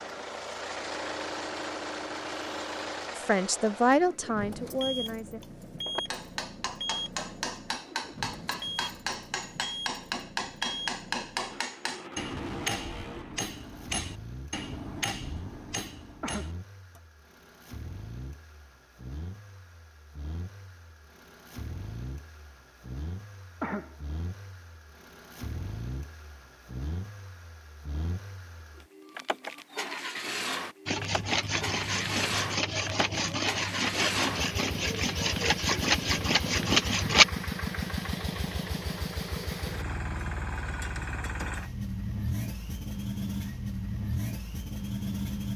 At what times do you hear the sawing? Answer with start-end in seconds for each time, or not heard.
30.9-37.2.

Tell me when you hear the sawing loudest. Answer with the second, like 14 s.
37 s.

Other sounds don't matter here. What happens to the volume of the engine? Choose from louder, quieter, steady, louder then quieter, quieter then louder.
quieter then louder.